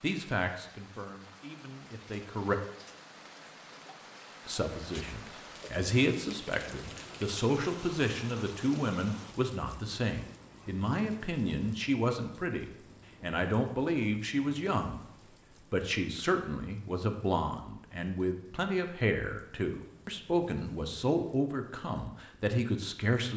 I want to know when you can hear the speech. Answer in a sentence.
You can hear the speech from 0.0 to 2.5 s, from 4.5 to 15.0 s and from 15.7 to 23.3 s.